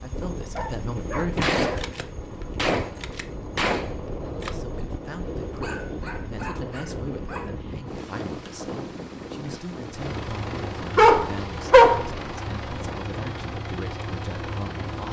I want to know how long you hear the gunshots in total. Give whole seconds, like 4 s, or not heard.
4 s.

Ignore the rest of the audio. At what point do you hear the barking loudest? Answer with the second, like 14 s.
12 s.